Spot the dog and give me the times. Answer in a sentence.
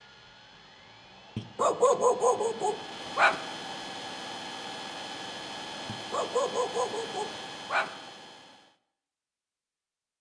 The dog can be heard from 1.4 to 3.4 s and from 5.8 to 7.9 s.